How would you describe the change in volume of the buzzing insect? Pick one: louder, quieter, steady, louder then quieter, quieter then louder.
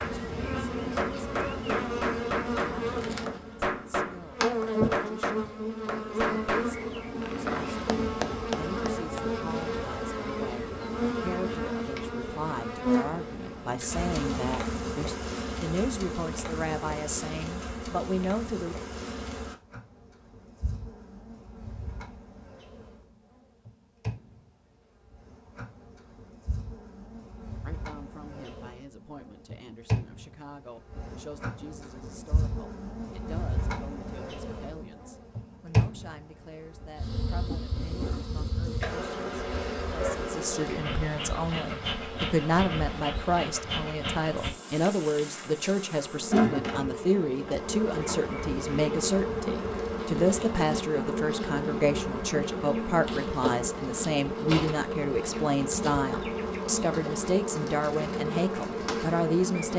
quieter then louder.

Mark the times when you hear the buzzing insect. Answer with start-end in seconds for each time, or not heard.
0.0-59.7.